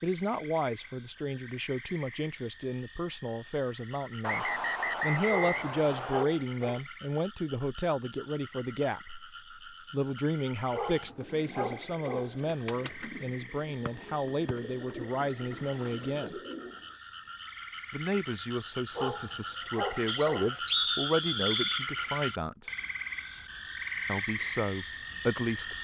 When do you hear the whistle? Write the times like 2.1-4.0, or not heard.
4.2-6.2, 13.8-14.6, 20.1-21.9.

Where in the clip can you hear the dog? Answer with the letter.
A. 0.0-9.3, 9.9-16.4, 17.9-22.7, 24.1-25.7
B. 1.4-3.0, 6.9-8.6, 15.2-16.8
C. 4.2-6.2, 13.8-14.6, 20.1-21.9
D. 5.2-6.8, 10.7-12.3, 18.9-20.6
D.